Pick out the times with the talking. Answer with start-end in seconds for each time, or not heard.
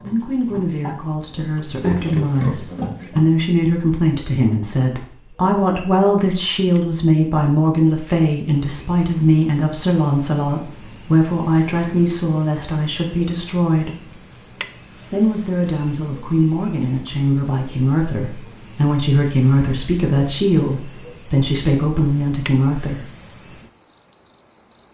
0.0-14.1, 15.1-23.1.